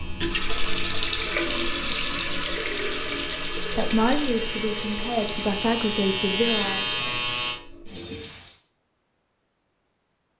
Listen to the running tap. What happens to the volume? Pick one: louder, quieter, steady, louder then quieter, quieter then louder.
quieter.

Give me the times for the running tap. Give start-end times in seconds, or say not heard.
0.0-8.6.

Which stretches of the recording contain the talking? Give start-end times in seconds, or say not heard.
3.8-6.9.